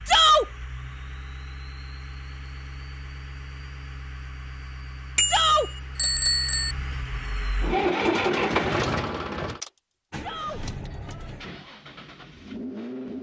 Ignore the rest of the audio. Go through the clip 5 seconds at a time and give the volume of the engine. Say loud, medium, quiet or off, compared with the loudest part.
quiet, loud, medium.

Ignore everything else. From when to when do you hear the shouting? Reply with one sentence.
You can hear the shouting from 0.1 to 0.5 s, from 5.2 to 5.7 s and from 10.2 to 10.6 s.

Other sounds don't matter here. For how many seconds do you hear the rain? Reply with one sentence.
The rain can't be heard in this clip.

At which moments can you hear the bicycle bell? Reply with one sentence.
You can hear the bicycle bell from 5.2 to 6.8 s.